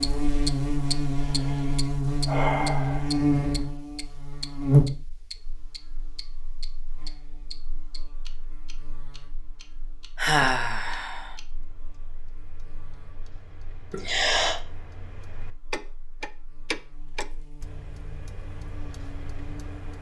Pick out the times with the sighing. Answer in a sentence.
You can hear the sighing from 1.1 to 3.2 s, from 10.2 to 11.3 s and from 13.9 to 14.6 s.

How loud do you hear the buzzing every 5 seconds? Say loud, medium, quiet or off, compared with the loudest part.
loud, quiet, quiet, quiet.